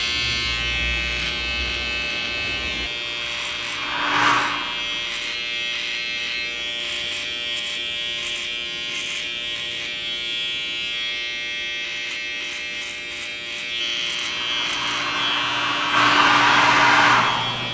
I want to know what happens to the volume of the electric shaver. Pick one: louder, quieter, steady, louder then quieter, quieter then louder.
steady.